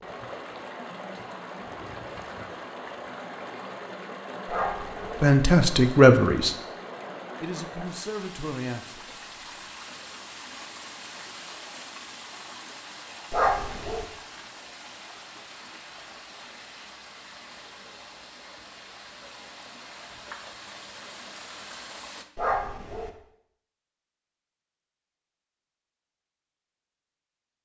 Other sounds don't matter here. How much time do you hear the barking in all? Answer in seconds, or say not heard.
2 s.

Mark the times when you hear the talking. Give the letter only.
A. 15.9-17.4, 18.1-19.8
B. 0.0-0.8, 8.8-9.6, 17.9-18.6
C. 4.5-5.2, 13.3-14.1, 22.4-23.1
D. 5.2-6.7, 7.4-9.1
D.